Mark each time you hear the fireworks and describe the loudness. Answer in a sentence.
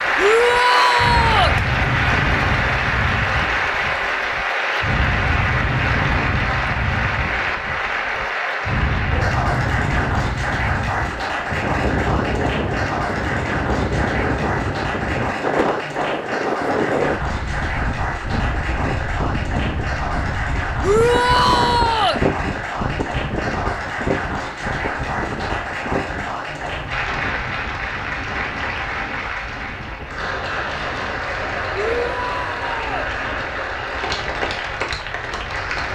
The fireworks can't be heard in this clip.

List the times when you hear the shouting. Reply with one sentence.
You can hear the shouting from 0.1 to 1.6 s, from 20.8 to 22.2 s and from 31.8 to 33.0 s.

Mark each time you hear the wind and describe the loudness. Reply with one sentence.
The wind can be heard from 0.0 to 35.9 s, getting quieter.